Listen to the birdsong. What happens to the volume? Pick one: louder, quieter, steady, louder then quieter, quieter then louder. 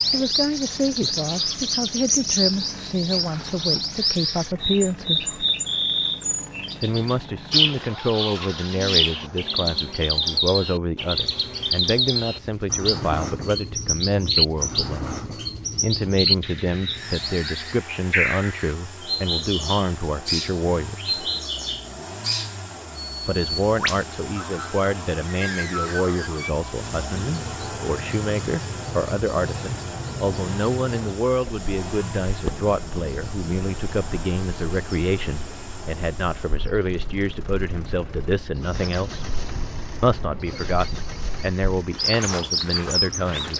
quieter.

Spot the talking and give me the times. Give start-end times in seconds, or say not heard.
0.1-5.5, 6.8-15.2, 15.8-21.1, 23.2-39.2, 40.0-43.5.